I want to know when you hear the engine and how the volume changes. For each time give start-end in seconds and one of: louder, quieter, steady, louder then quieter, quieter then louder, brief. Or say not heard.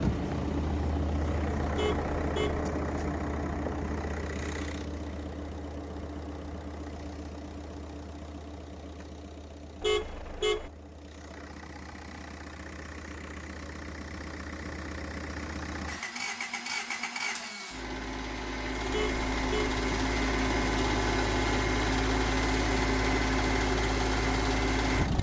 0.0-25.1 quieter then louder.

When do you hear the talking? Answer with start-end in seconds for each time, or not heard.
not heard.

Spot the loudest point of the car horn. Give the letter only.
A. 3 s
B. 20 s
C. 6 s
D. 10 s
D.